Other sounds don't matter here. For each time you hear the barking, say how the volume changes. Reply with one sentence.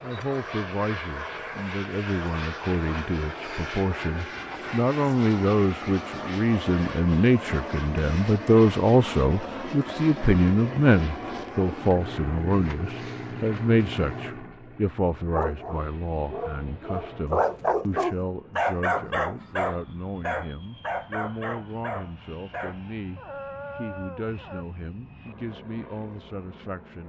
You can hear the barking from 15.2 to 24.6 s, getting louder then quieter.